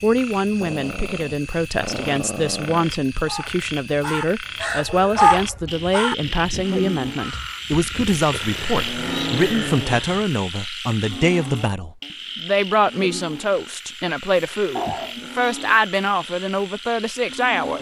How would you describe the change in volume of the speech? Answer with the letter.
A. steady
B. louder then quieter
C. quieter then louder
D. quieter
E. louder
A.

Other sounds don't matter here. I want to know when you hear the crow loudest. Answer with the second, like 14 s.
5 s.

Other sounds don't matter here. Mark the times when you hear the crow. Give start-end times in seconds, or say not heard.
3.2-10.2.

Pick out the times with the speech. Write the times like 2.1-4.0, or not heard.
0.0-17.7.